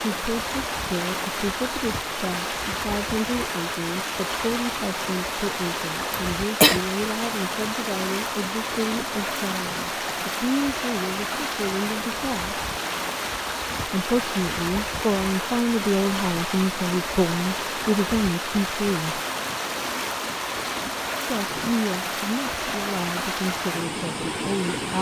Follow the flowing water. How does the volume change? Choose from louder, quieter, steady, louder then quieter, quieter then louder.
steady.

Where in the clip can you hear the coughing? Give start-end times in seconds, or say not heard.
6.1-6.8.